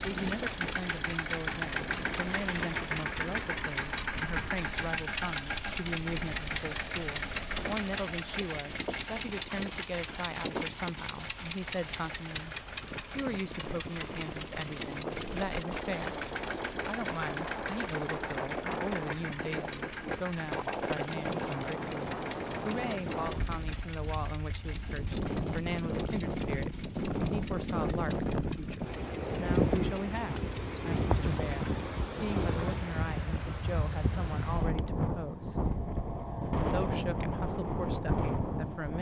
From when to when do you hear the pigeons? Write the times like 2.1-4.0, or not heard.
not heard.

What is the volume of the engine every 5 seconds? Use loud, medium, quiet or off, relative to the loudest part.
loud, loud, medium, medium, medium, quiet, quiet, off.